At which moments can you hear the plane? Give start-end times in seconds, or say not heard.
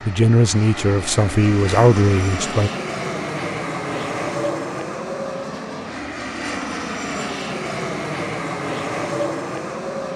0.0-10.1.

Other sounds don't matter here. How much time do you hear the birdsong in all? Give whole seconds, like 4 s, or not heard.
not heard.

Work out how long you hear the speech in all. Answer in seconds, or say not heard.
3 s.